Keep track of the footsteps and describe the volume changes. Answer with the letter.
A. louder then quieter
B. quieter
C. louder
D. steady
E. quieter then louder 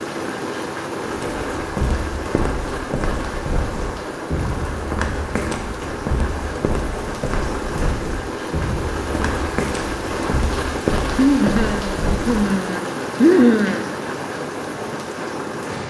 D.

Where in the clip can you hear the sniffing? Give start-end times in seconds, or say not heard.
11.2-13.9.